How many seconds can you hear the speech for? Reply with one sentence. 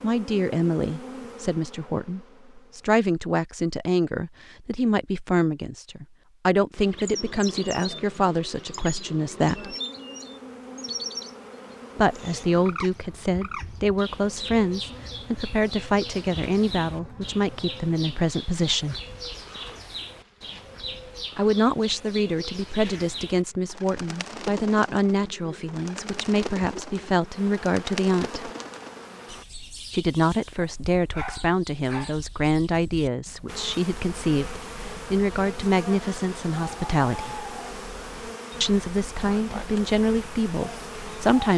The speech can be heard for 34 seconds in total.